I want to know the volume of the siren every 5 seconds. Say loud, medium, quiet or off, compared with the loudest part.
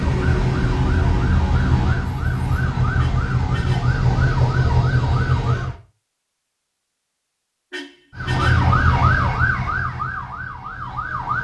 loud, loud, medium.